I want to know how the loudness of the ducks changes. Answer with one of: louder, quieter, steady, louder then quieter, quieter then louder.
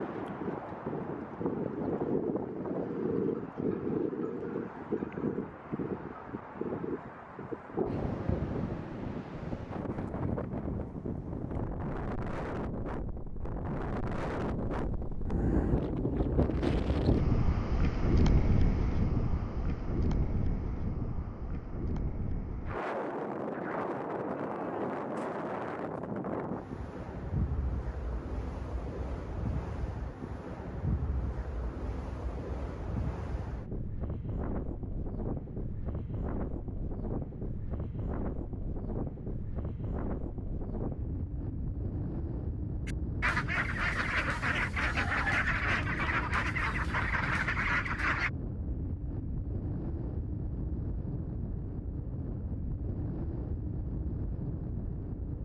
steady.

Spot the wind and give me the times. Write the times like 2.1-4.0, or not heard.
0.0-55.4.